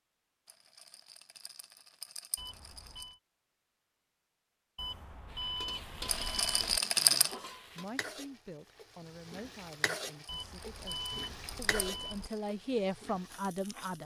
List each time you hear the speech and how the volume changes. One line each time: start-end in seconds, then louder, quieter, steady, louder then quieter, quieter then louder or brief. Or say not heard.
7.0-14.0 quieter then louder.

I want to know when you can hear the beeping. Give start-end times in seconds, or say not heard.
2.4-3.2, 4.8-6.8, 10.2-12.3.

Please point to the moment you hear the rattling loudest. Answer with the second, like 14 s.
7 s.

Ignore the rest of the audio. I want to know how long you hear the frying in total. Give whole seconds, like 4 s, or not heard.
9 s.